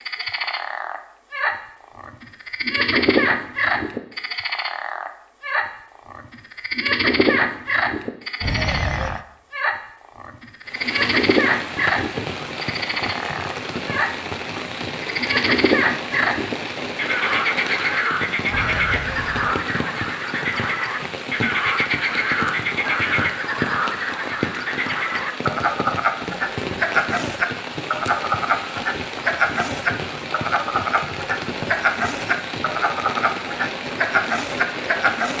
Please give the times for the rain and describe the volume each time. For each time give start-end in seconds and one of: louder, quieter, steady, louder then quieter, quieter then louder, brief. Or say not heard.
10.7-35.3 steady.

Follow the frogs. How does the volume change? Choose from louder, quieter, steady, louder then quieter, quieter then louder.
steady.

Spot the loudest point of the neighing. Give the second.
9 s.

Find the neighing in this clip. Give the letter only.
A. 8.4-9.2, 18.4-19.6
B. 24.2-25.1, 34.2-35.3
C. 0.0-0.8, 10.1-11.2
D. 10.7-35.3
A.